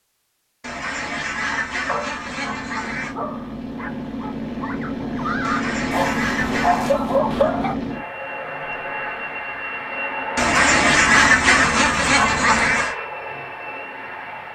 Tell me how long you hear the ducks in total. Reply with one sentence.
The ducks can be heard for 7 seconds in total.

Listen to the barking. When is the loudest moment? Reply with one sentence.
The volume of the barking peaks at 7 seconds.